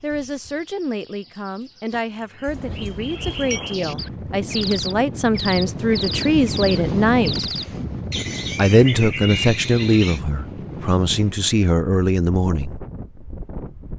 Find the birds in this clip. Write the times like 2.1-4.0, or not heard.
0.0-10.2.